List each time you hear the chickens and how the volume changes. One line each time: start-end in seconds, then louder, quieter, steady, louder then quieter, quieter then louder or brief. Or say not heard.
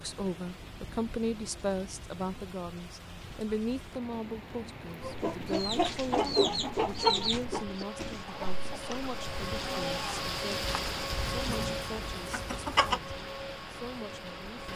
5.0-13.0 quieter.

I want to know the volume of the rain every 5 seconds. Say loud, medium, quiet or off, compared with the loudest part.
medium, loud, loud.